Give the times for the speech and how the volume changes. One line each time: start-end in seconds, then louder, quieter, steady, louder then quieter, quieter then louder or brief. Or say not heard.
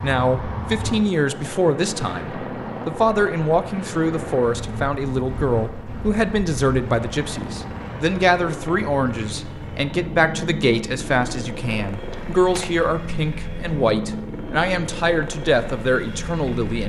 0.0-16.8 steady.